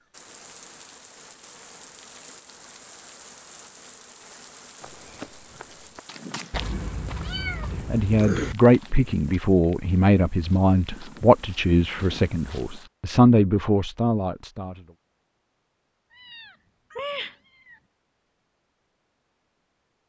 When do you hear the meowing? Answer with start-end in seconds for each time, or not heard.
6.5-8.6, 16.1-17.8.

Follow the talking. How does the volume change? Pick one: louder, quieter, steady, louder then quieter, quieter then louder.
quieter then louder.